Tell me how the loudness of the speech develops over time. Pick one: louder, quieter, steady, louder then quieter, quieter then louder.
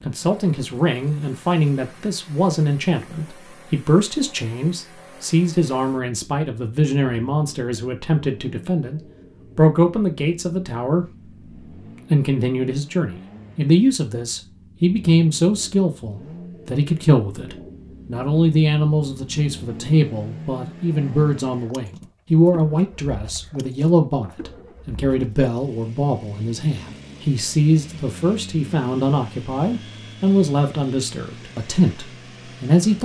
steady.